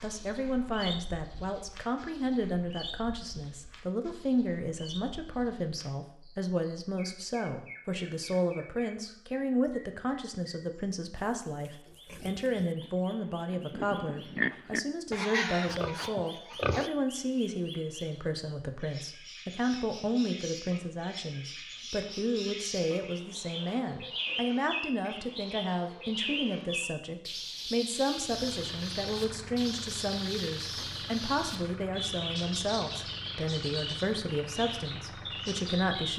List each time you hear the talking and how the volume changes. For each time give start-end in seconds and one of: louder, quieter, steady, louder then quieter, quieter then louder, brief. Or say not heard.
0.0-36.1 steady.